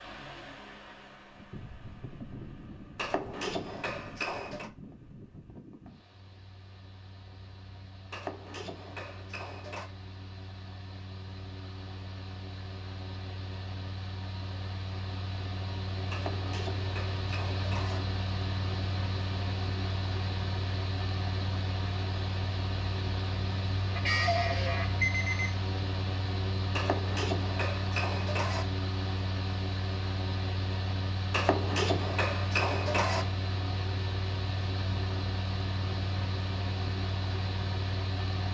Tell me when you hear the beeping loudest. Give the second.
24 s.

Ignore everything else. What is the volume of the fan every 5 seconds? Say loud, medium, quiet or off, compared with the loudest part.
medium, quiet, medium, loud, loud, loud, loud, loud.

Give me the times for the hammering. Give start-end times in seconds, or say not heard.
3.0-4.7, 8.1-9.9, 16.1-18.0, 26.8-28.6, 31.3-33.2.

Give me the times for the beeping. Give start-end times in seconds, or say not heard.
23.9-25.6.